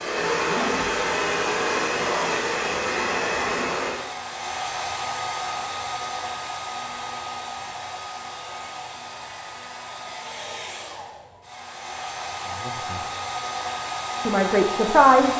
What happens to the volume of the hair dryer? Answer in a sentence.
The volume of the hair dryer goes down, then up.